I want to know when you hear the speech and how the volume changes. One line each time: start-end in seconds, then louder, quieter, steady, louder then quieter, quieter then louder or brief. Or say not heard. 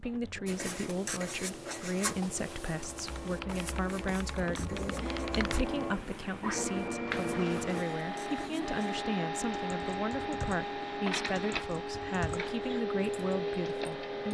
0.0-14.3 steady.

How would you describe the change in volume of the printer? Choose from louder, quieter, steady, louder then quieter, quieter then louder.
louder.